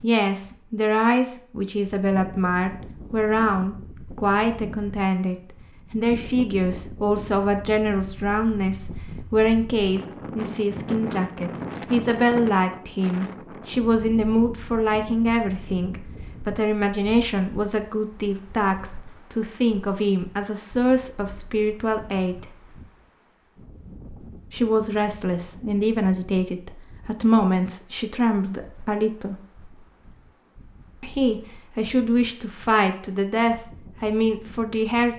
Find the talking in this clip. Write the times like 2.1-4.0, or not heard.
0.0-22.6, 24.5-29.4, 31.0-35.1.